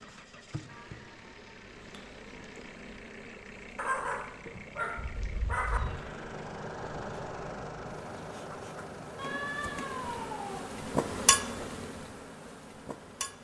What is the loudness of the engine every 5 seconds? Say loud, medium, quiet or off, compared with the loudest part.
medium, loud, medium.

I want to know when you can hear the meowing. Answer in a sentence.
You can hear the meowing from 0.7 to 2.5 s, from 5.0 to 6.0 s and from 9.2 to 10.6 s.